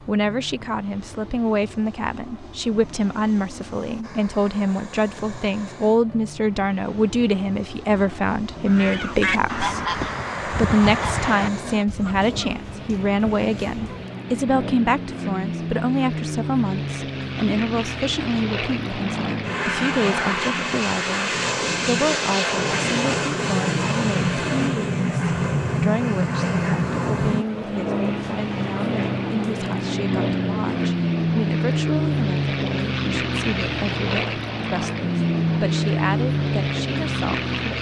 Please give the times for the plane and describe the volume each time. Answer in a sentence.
The plane can be heard from 0.0 to 37.7 s, getting louder.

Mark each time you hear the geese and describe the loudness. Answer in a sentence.
The geese can be heard from 8.7 to 14.2 s, getting quieter.